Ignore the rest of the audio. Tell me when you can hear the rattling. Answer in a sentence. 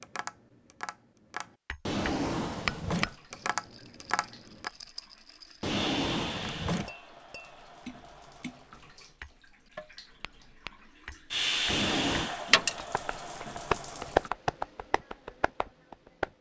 The rattling can be heard from 3.1 to 5.8 s and from 12.4 to 12.8 s.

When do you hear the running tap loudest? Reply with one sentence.
The loudest moment of the running tap is at 12 seconds.